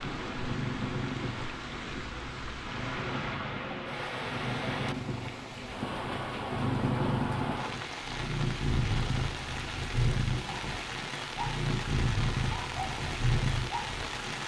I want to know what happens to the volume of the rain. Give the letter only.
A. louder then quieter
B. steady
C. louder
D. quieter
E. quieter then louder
B.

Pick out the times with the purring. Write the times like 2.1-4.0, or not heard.
0.0-14.4.